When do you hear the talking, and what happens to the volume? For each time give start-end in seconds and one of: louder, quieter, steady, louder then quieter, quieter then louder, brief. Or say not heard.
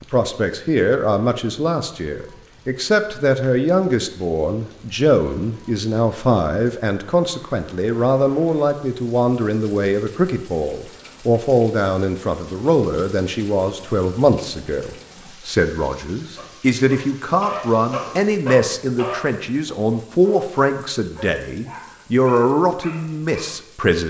0.0-24.0 steady.